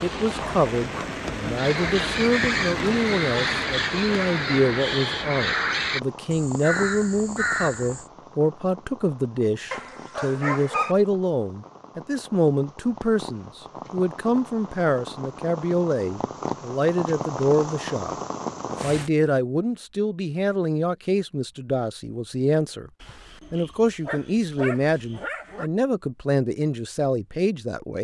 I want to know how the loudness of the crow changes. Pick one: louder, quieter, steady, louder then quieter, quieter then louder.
steady.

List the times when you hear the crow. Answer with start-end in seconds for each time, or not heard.
1.6-8.1.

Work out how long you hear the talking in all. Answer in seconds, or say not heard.
27 s.